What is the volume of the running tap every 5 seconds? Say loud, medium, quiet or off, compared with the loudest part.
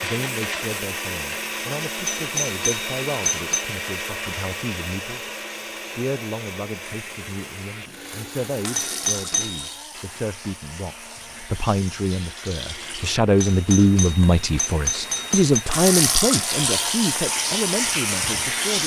off, quiet, quiet, loud.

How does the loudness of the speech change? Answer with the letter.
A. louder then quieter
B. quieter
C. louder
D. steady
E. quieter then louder
C.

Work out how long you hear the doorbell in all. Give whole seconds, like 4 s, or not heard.
5 s.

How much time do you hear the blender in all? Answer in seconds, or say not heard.
19 s.